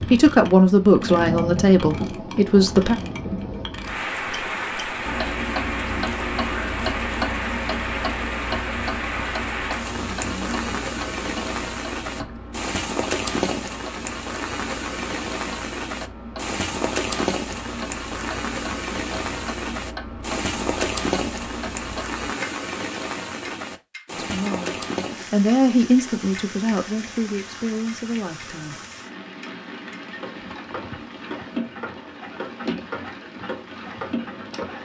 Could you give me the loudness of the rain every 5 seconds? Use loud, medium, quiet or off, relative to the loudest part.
loud, loud, loud, loud, loud, medium, medium.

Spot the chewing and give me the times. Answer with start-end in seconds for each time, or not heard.
not heard.